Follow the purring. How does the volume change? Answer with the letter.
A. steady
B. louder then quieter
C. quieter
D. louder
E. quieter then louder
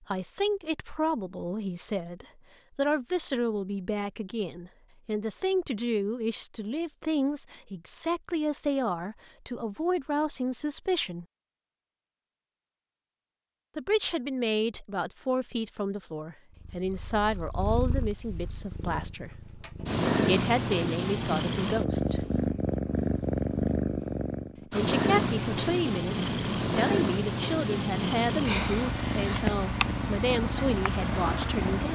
D.